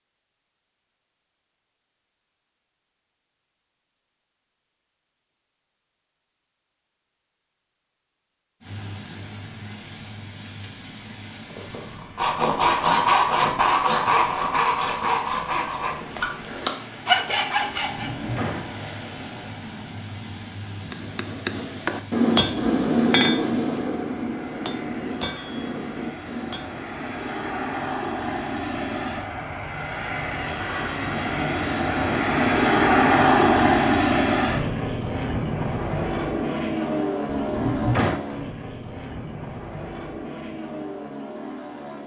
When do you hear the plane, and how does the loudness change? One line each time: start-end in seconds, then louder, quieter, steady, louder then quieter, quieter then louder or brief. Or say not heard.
8.6-42.0 louder then quieter.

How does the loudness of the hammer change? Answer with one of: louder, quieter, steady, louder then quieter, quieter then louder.
louder then quieter.